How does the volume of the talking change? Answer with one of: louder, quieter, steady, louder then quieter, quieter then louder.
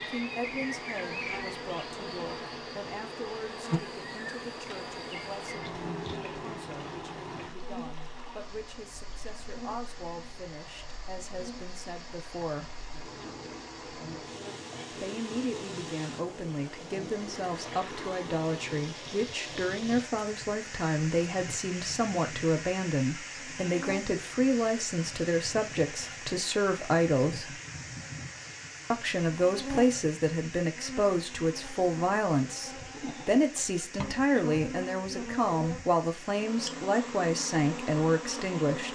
louder.